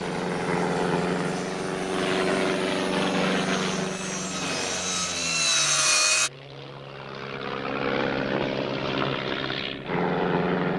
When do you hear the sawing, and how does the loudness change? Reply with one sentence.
You can hear the sawing from 0.0 to 6.3 s, getting louder.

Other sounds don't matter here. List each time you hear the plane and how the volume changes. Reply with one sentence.
The plane can be heard from 0.0 to 10.7 s, getting quieter then louder.